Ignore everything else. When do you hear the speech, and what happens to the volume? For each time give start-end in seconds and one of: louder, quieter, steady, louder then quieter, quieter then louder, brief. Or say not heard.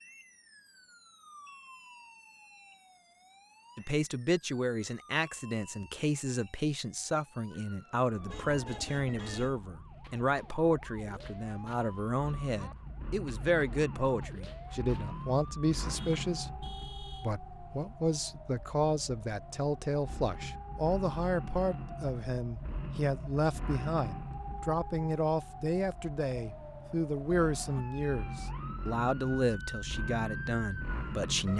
3.8-31.5 steady.